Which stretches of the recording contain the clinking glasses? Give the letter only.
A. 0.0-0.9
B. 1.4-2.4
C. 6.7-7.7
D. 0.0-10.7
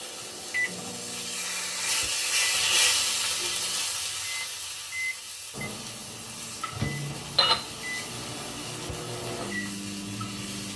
C.